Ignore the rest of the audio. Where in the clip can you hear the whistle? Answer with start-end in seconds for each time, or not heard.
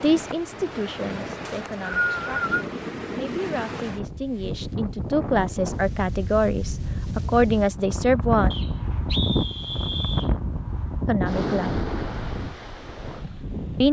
1.4-2.6, 8.5-10.3.